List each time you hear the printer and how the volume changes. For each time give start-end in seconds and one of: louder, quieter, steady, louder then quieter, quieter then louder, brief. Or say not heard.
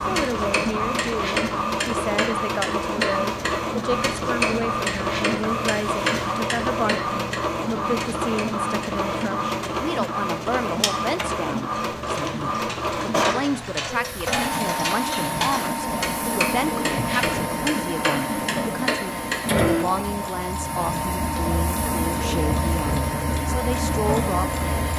0.0-24.9 steady.